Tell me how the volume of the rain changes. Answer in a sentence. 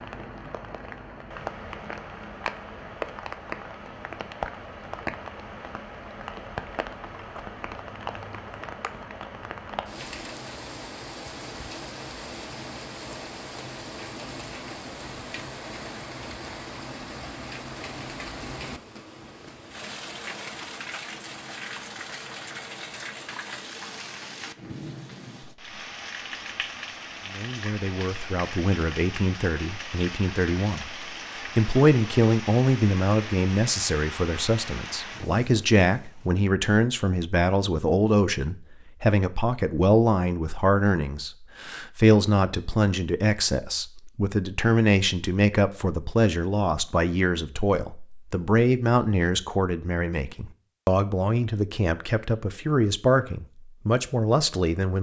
The loudness of the rain stays about the same.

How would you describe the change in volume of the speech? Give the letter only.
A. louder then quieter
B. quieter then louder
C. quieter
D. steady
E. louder
D.